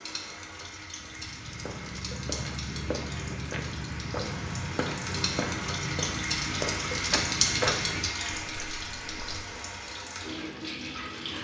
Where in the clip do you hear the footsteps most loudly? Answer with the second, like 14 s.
8 s.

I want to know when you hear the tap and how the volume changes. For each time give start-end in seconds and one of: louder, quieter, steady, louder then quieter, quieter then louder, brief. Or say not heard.
0.0-11.3 louder then quieter.